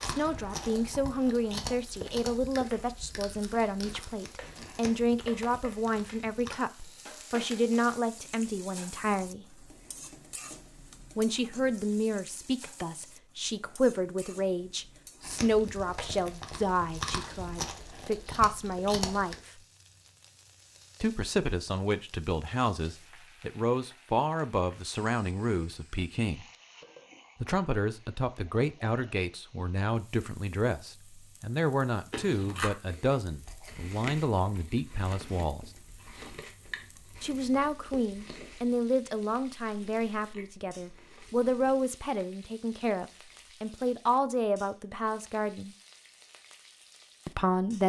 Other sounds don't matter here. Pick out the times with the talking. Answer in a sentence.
The talking can be heard from 0.0 to 9.4 s, from 11.2 to 19.6 s, from 21.0 to 26.4 s, from 27.4 to 35.7 s, from 37.2 to 45.8 s and from 47.2 to 47.8 s.